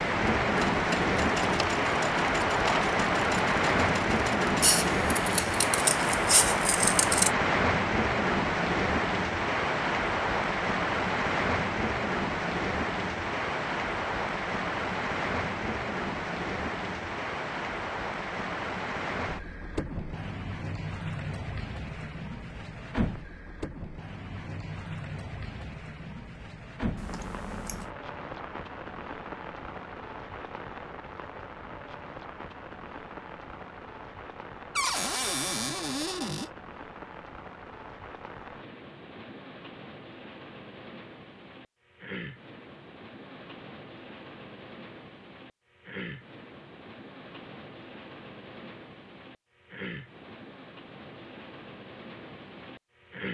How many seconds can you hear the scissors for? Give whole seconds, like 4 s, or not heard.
4 s.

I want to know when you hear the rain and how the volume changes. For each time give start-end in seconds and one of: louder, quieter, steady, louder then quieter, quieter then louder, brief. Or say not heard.
0.0-53.3 quieter.